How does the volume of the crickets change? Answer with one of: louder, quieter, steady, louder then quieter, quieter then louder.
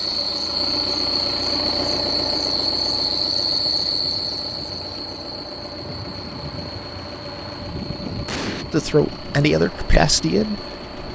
quieter.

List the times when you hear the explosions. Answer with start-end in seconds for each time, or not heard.
8.2-8.7.